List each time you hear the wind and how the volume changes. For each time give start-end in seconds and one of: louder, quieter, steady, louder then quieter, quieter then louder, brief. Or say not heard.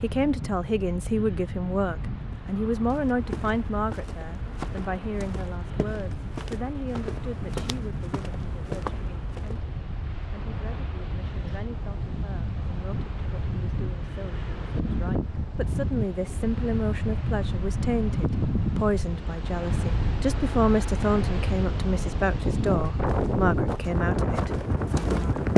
0.0-25.5 louder.